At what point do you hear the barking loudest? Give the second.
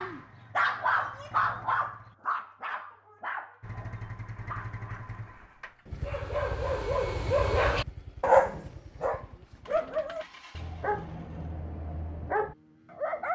8 s.